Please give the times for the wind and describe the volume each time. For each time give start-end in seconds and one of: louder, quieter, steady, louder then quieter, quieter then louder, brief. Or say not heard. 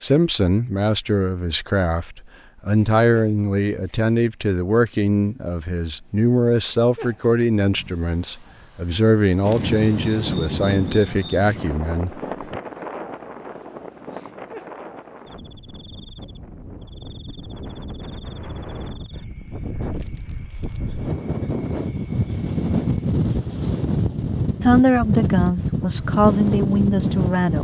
9.4-27.5 quieter then louder.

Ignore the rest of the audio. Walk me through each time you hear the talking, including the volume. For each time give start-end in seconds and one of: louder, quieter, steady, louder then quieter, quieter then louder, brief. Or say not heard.
0.0-12.6 steady
24.6-27.5 brief.